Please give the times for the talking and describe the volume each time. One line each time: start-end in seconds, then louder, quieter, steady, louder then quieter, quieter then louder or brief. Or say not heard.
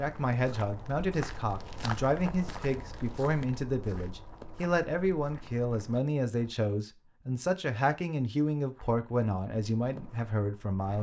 0.0-10.9 steady.